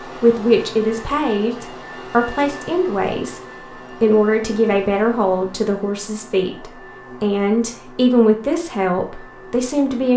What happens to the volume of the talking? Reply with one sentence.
The loudness of the talking stays about the same.